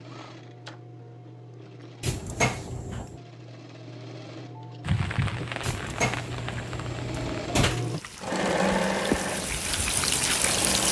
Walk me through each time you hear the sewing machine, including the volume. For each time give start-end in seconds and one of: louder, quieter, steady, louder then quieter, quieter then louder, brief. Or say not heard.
0.0-10.8 louder.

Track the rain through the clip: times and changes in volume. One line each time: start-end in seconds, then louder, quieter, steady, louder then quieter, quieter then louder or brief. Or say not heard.
4.8-10.8 quieter then louder.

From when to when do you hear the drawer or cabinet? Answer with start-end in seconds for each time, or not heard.
2.0-3.2, 5.6-7.8.